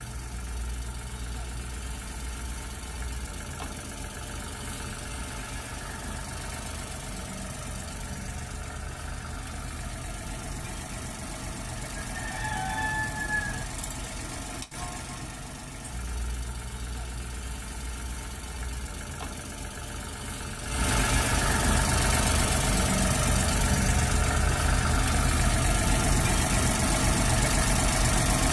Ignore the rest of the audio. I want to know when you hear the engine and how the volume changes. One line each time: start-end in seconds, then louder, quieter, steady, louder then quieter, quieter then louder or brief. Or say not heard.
0.0-28.4 louder.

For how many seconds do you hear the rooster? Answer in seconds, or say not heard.
2 s.